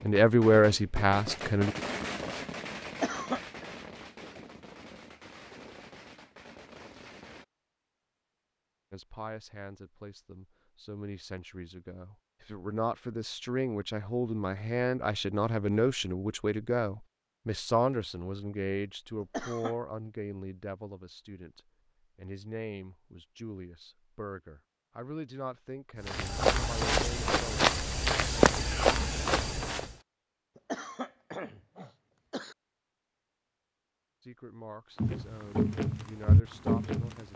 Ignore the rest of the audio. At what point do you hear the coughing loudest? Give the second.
3 s.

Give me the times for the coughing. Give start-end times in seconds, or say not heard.
2.9-3.7, 19.2-19.8, 30.6-32.5.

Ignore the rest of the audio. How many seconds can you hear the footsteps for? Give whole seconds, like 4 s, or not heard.
6 s.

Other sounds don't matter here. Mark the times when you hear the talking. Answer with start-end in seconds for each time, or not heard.
0.0-1.8, 8.9-27.6, 34.2-37.3.